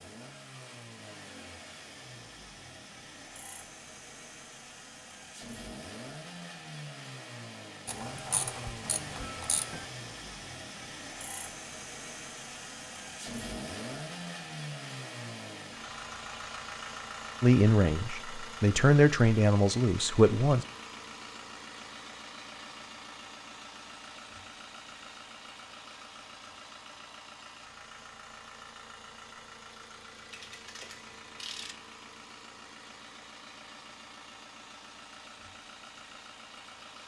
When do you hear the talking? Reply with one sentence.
You can hear the talking from 17.4 to 20.6 s.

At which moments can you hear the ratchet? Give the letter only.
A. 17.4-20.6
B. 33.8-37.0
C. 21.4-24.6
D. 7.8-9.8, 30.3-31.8
D.